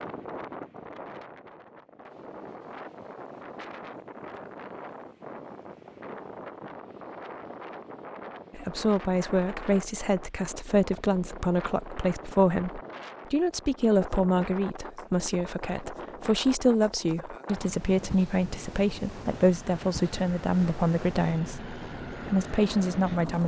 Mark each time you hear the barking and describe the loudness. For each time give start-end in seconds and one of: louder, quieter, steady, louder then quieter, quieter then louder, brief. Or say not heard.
not heard.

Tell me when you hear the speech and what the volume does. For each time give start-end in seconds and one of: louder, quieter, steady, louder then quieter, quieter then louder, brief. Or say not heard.
8.5-23.4 steady.